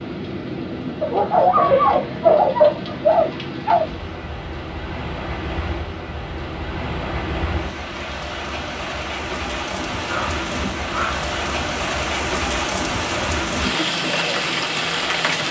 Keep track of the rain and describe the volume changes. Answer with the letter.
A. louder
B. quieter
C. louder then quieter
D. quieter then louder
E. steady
A.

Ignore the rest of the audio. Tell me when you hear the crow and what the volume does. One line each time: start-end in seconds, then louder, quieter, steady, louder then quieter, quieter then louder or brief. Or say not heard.
not heard.